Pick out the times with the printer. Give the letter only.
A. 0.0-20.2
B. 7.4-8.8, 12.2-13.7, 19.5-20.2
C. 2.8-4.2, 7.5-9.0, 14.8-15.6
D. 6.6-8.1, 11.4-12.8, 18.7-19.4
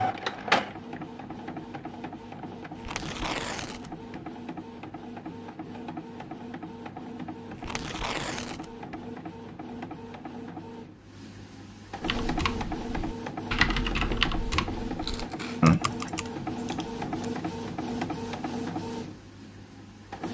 A.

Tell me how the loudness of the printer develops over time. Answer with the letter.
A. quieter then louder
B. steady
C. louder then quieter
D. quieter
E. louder
A.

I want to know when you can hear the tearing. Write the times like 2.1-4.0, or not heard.
2.8-4.2, 7.5-9.0, 14.8-15.6.